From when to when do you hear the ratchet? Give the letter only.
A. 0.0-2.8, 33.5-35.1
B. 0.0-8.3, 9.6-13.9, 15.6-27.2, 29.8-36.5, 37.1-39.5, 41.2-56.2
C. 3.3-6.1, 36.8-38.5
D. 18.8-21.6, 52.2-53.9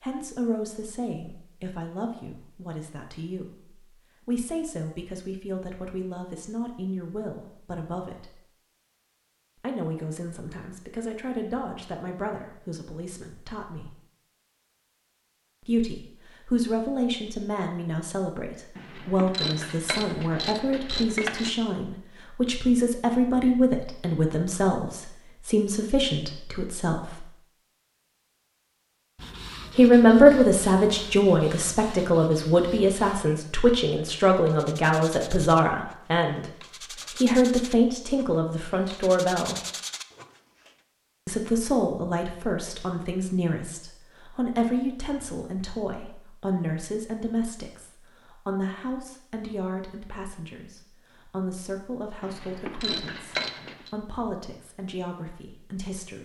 D.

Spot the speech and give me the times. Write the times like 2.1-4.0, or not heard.
0.0-8.3, 9.6-13.9, 15.6-27.2, 29.8-36.5, 37.1-39.5, 41.2-56.2.